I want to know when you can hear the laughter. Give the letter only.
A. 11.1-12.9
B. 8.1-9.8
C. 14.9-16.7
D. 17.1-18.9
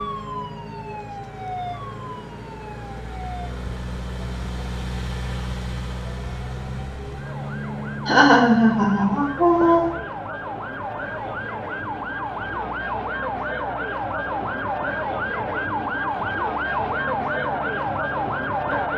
B.